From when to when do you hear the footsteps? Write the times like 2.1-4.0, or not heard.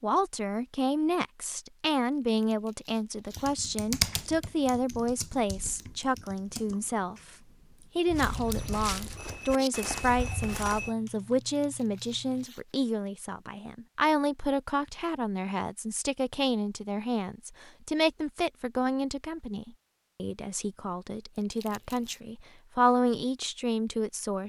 8.1-10.9.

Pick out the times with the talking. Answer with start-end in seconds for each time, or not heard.
0.0-7.2, 8.0-24.4.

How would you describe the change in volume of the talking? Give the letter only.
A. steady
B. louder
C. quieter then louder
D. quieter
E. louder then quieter
A.